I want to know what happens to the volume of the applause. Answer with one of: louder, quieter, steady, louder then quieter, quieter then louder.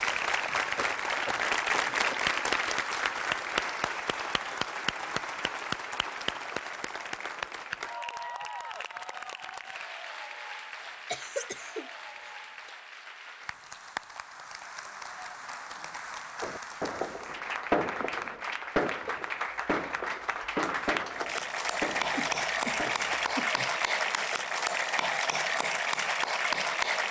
quieter then louder.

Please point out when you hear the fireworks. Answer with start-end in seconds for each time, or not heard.
16.4-23.4.